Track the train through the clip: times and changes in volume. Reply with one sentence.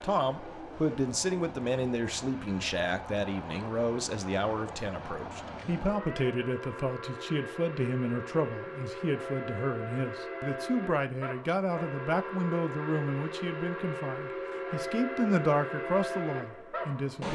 The train can be heard from 0.0 to 17.2 s, getting louder.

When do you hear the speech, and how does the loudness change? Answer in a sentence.
You can hear the speech from 0.0 to 17.2 s, at a steady volume.